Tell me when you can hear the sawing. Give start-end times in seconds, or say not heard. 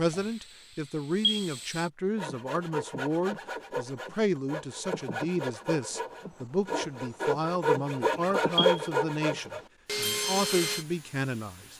2.1-10.8.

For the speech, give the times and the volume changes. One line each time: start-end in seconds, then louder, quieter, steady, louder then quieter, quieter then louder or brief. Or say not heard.
0.0-11.7 steady.